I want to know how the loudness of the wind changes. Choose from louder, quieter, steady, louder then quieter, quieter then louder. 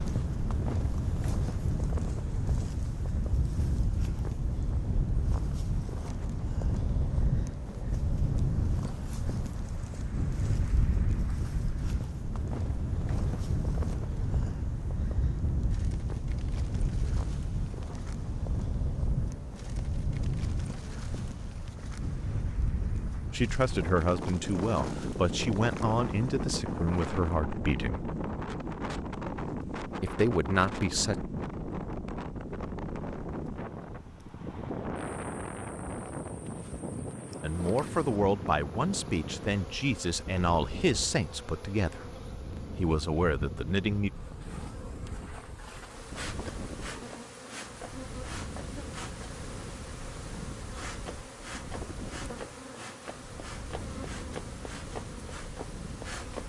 quieter.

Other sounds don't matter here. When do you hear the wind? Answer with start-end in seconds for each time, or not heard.
0.0-56.4.